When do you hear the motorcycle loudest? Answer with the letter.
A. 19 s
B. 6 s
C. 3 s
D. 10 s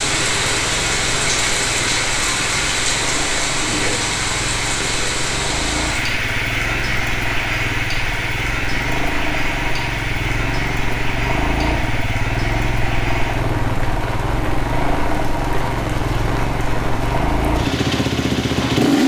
A.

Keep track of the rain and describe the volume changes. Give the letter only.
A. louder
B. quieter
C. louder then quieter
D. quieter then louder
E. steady
B.